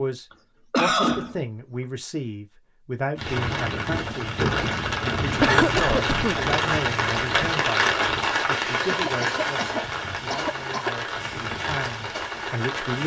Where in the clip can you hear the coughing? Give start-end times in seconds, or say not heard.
0.7-1.4, 5.4-6.4, 8.8-10.9.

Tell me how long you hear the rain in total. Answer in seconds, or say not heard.
10 s.